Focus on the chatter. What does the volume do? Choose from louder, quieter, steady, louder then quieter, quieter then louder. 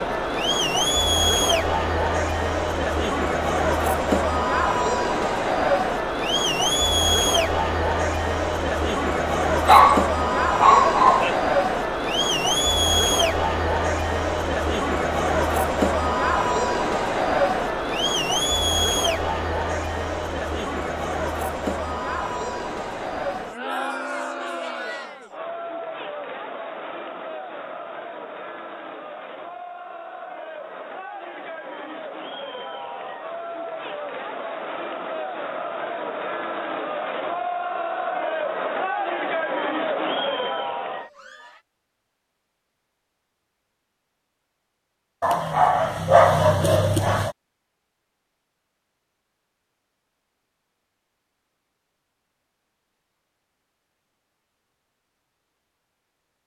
quieter then louder.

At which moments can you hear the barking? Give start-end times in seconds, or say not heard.
9.7-11.3, 45.2-47.4.